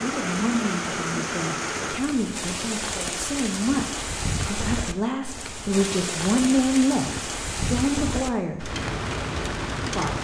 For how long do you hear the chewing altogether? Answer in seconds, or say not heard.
not heard.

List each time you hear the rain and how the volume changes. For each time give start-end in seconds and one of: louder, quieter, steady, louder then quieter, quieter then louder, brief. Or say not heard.
0.0-10.1 steady.